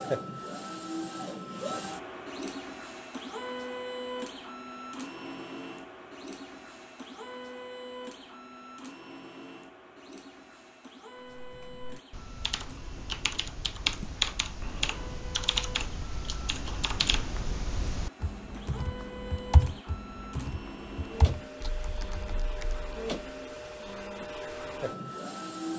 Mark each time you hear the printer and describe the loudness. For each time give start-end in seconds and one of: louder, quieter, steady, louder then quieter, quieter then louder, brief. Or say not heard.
0.0-25.7 quieter then louder.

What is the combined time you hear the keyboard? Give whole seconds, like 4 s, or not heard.
12 s.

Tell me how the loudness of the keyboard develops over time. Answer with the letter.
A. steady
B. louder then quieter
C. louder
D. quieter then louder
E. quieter
B.